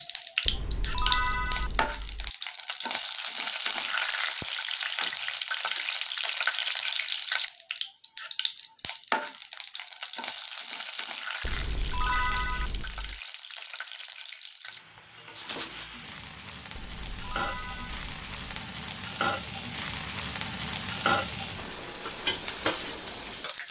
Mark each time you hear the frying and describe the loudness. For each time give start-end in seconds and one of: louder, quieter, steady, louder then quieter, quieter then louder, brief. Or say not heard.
0.0-23.6 quieter then louder.